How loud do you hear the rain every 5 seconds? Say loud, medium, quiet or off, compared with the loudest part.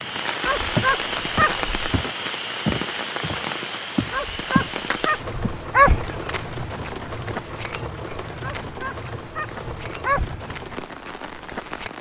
loud, medium, medium.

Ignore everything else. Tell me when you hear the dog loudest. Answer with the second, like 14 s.
6 s.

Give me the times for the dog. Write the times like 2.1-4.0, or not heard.
0.4-1.9, 4.1-6.1, 8.4-10.4.